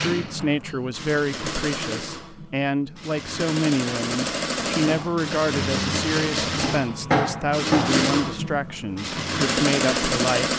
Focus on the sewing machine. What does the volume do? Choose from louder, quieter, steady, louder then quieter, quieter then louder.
louder.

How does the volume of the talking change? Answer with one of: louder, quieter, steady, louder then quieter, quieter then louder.
steady.